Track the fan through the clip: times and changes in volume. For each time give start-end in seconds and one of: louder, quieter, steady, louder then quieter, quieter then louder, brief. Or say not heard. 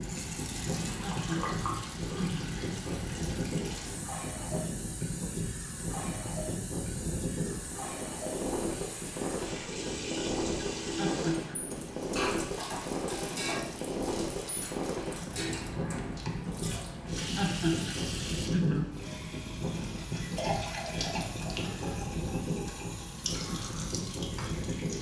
0.0-24.9 steady.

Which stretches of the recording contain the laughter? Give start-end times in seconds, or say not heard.
1.0-2.5, 10.9-11.6, 17.4-18.9.